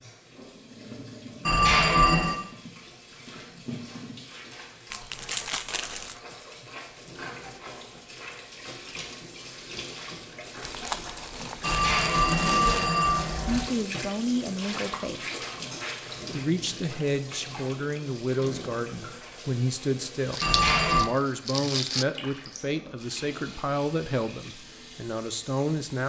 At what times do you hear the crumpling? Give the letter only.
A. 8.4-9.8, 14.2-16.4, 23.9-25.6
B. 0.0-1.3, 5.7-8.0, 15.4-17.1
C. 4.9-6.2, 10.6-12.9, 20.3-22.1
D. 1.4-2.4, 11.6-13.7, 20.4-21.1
C.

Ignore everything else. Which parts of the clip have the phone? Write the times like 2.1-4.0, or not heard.
1.4-2.4, 11.6-13.7, 20.4-21.1.